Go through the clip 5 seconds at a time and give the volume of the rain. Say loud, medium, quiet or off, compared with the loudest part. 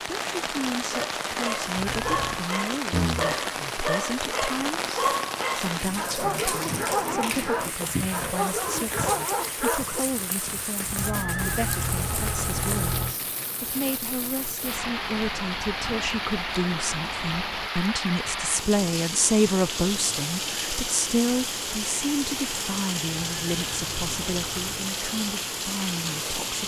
loud, loud, medium, loud, loud, loud.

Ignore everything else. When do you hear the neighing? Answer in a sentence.
The neighing can be heard from 1.8 to 2.5 s, from 10.9 to 13.2 s and from 23.1 to 24.9 s.